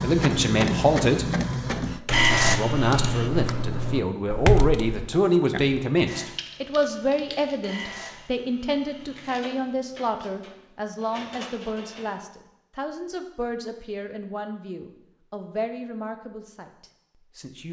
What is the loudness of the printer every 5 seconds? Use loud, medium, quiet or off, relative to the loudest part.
loud, quiet, quiet, off.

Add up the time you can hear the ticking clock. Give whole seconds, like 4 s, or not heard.
not heard.